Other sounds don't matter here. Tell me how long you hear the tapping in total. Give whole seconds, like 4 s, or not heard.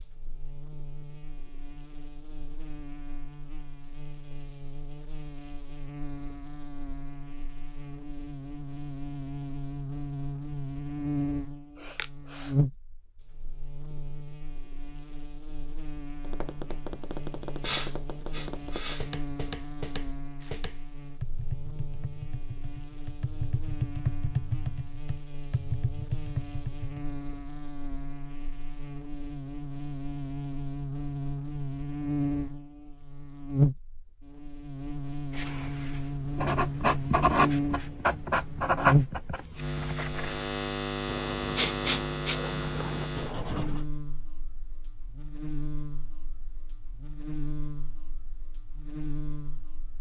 11 s.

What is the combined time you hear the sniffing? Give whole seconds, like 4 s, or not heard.
3 s.